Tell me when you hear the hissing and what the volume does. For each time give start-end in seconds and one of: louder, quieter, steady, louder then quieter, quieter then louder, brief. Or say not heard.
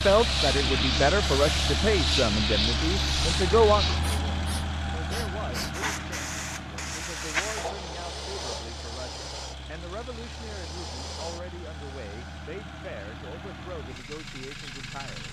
0.0-12.5 quieter.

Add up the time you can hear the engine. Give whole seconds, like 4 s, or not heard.
15 s.